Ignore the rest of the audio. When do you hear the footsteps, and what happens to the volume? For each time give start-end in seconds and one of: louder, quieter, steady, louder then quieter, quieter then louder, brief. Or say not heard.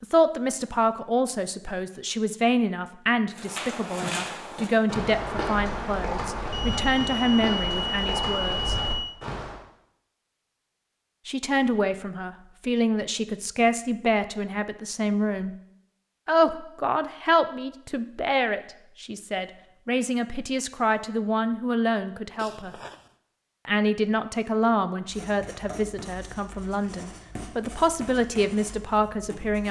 3.3-9.6 steady.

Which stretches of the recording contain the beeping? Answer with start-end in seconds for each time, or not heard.
6.5-9.2, 22.4-22.9.